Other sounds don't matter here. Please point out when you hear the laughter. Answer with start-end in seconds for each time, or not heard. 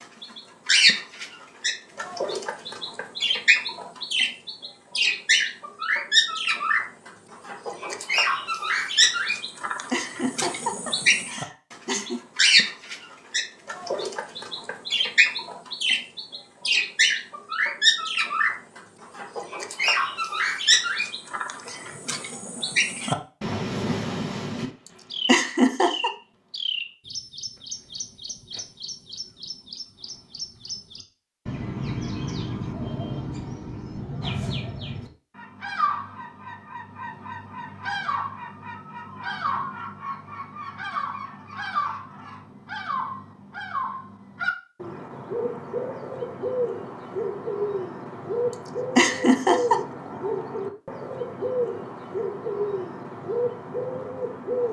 9.9-12.2, 25.2-26.1, 49.0-49.8.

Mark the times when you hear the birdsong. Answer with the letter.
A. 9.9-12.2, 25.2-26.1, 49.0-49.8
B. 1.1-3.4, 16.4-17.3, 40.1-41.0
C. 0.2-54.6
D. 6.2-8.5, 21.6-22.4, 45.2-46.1
C.